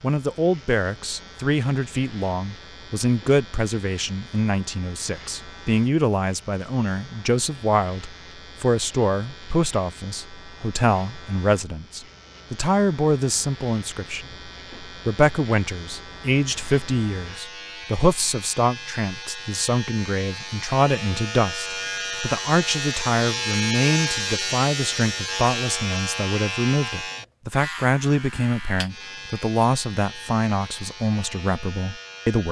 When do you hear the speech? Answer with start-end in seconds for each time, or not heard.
0.0-32.4.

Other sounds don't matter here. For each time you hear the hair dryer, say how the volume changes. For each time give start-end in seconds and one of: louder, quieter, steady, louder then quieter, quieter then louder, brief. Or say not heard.
not heard.